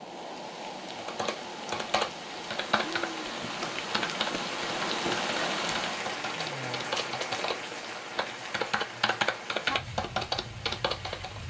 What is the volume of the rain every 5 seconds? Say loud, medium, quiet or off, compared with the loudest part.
loud, loud, medium.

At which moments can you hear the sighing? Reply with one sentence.
The sighing can be heard from 2.9 to 3.6 s and from 6.3 to 7.2 s.